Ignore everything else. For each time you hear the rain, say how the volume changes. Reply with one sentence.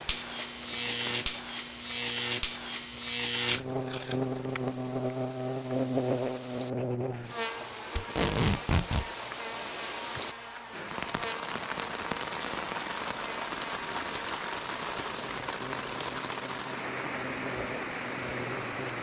You can hear the rain from 0.0 to 18.9 s, getting louder.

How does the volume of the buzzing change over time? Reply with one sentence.
The loudness of the buzzing goes down.